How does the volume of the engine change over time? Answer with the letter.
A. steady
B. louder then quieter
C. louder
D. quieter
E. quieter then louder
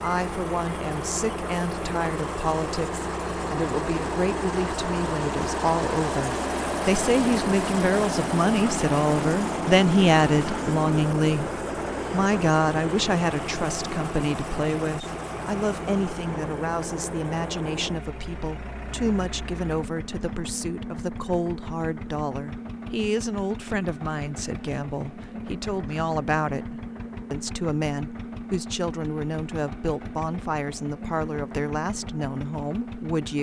D.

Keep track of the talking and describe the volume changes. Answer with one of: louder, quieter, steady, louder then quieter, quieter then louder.
louder then quieter.